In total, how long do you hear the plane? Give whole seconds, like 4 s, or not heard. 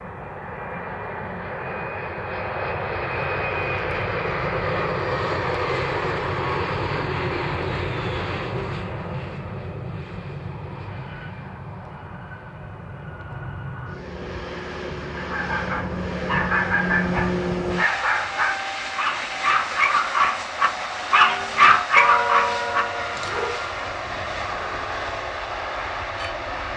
27 s.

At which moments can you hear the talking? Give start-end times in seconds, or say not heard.
not heard.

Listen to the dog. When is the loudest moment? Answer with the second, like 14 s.
22 s.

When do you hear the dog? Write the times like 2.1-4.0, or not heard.
15.2-23.6.